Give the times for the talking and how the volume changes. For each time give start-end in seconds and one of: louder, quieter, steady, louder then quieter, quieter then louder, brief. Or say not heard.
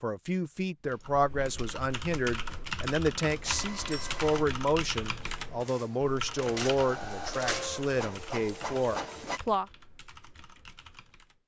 0.0-9.7 steady.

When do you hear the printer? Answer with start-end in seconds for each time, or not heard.
3.3-9.4.